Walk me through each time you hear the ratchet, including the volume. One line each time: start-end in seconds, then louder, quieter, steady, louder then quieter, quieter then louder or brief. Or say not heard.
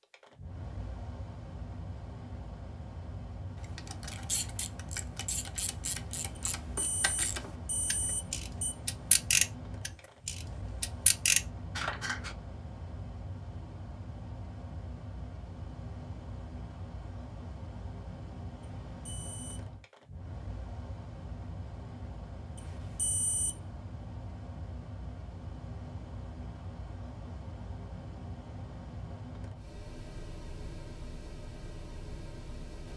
3.8-12.3 louder.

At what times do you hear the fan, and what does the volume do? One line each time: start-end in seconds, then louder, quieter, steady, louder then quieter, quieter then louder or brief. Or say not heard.
0.0-32.9 steady.